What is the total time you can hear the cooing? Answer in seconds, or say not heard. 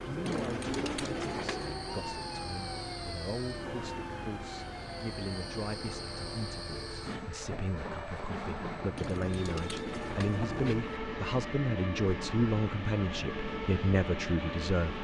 3 s.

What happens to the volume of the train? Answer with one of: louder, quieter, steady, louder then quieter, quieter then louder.
steady.